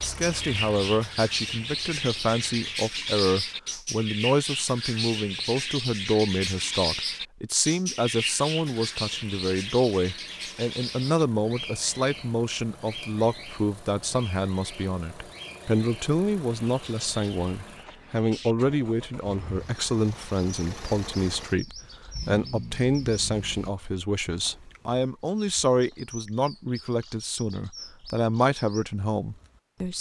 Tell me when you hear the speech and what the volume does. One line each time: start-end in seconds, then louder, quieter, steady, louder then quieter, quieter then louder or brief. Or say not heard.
0.0-29.9 steady.